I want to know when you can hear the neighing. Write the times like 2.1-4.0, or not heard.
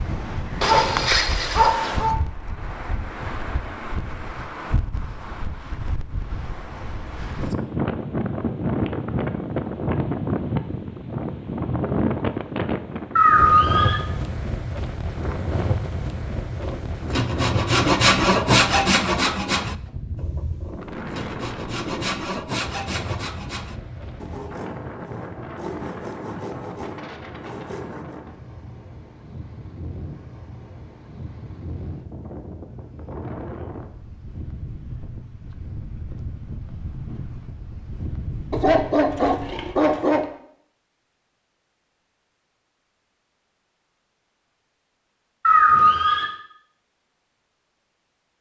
13.2-13.9, 45.5-46.2.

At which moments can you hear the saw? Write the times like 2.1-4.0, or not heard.
16.6-28.2.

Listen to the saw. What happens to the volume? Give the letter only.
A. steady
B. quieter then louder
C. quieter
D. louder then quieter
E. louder
C.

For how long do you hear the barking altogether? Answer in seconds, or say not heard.
3 s.